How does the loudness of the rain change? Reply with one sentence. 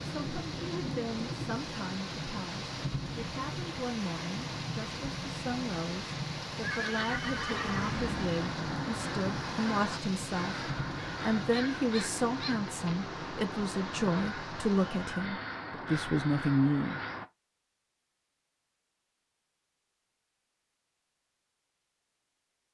The volume of the rain goes down.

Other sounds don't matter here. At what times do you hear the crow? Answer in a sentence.
You can hear the crow from 7.5 to 17.2 s.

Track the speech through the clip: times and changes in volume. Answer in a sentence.
You can hear the speech from 0.0 to 17.0 s, getting louder.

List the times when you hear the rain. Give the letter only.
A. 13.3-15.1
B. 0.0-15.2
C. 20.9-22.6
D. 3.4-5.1
B.